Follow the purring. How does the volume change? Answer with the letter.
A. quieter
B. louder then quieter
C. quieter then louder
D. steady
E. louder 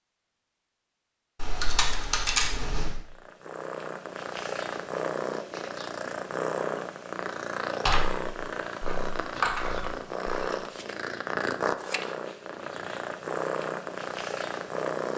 D.